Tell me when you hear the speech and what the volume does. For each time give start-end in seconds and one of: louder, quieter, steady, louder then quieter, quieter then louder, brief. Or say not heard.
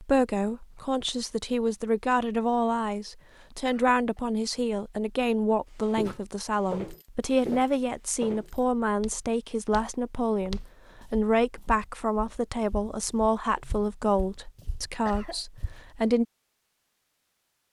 0.0-16.2 steady.